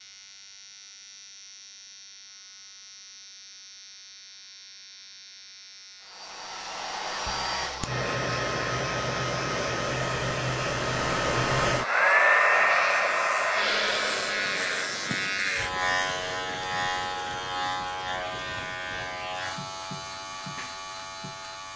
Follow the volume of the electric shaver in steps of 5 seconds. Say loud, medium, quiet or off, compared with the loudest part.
quiet, quiet, loud, loud, medium.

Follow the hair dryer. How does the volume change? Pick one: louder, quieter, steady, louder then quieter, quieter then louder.
louder then quieter.